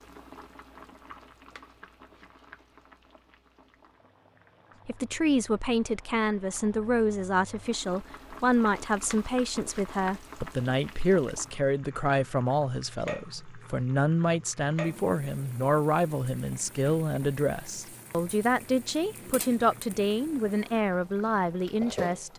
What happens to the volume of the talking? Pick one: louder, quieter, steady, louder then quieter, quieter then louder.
steady.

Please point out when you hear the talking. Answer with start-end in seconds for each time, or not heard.
4.8-22.3.